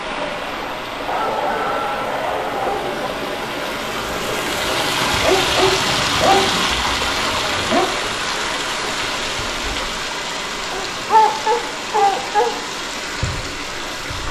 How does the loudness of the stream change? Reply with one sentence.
The loudness of the stream goes up, then down.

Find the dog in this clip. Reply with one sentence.
You can hear the dog from 1.1 to 3.1 s, from 5.1 to 7.9 s and from 10.7 to 12.6 s.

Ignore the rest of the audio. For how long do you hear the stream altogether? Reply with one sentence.
You can hear the stream for 14 seconds altogether.